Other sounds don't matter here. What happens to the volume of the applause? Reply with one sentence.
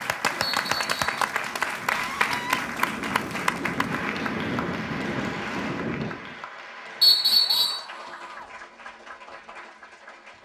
The volume of the applause goes down.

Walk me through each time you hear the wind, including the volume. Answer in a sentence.
You can hear the wind from 0.0 to 6.5 s, getting louder.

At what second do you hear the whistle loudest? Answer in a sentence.
The loudest moment of the whistle is at 7 seconds.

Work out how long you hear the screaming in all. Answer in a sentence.
You can hear the screaming for 2 seconds altogether.